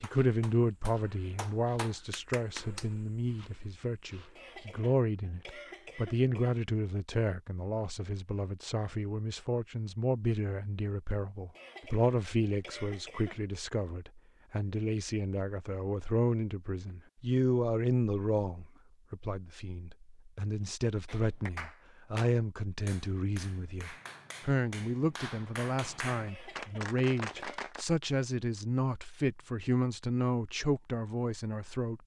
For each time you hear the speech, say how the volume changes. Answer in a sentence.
You can hear the speech from 0.0 to 32.0 s, at a steady volume.